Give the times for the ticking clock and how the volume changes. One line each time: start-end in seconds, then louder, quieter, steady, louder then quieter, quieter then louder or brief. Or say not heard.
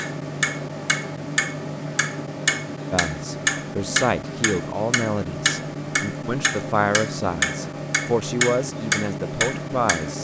0.0-10.1 steady.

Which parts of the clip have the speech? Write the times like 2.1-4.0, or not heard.
2.9-10.1.